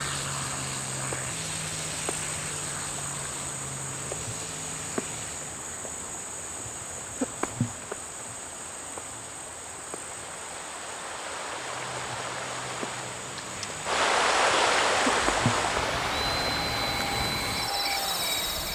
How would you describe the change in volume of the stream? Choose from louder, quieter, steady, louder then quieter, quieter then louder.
louder.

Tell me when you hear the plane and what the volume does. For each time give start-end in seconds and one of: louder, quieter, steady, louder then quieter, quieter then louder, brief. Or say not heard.
0.0-5.6 quieter
11.6-18.6 louder.